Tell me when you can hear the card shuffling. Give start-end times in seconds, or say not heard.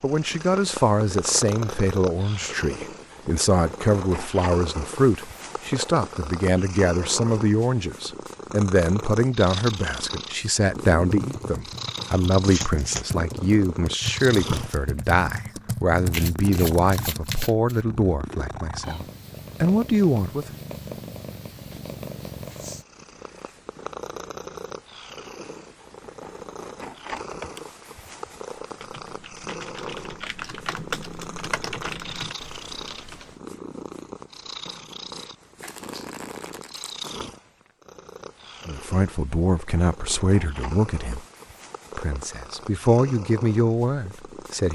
12.4-13.1, 16.1-17.9, 35.6-37.1.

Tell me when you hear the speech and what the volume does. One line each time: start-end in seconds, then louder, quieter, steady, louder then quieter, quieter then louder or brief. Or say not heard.
0.0-20.4 steady
38.6-41.2 brief
42.0-44.6 brief.